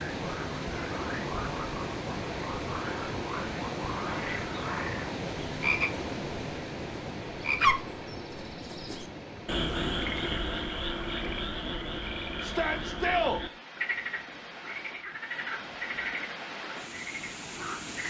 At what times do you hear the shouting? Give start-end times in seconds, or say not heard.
12.4-13.4.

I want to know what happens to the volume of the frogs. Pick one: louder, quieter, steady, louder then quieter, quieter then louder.
louder then quieter.